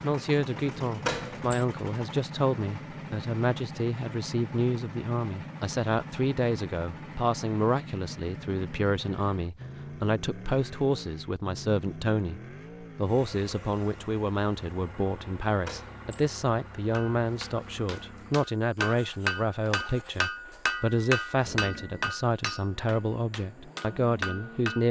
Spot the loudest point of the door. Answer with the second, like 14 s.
1 s.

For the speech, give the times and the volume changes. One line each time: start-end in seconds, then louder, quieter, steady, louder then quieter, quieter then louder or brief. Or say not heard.
0.0-24.8 steady.